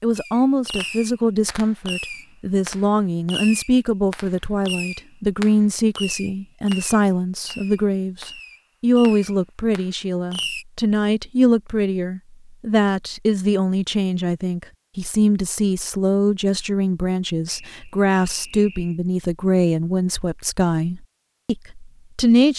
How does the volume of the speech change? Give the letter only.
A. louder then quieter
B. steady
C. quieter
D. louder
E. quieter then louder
B.